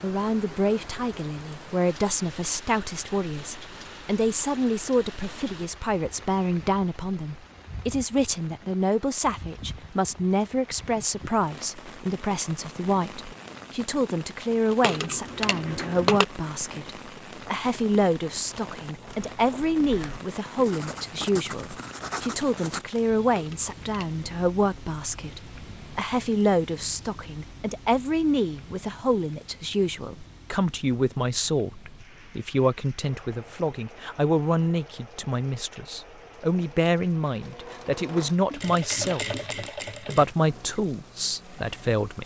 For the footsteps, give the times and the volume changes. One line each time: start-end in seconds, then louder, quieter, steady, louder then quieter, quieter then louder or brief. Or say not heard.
not heard.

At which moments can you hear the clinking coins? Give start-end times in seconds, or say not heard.
14.8-16.2, 23.4-24.2.